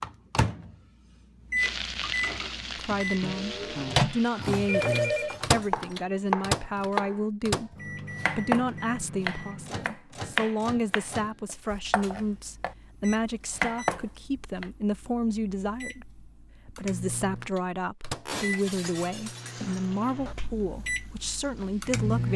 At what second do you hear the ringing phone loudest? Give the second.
5 s.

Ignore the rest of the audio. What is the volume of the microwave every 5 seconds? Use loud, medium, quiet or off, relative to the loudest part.
loud, loud, quiet, medium, loud.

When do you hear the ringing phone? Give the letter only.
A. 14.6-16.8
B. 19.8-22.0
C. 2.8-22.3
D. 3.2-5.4
D.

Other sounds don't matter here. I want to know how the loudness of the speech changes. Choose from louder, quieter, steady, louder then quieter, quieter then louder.
steady.